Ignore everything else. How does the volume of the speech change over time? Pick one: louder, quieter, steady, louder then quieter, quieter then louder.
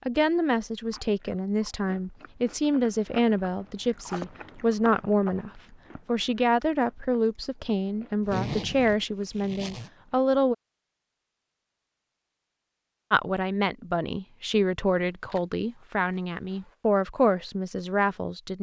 steady.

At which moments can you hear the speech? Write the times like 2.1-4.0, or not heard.
0.1-10.6, 13.1-18.5.